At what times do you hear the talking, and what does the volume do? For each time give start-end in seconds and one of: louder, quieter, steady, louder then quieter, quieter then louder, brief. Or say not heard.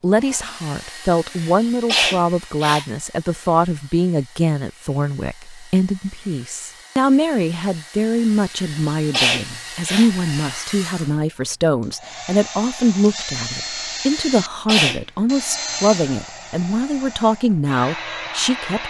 0.0-18.8 steady.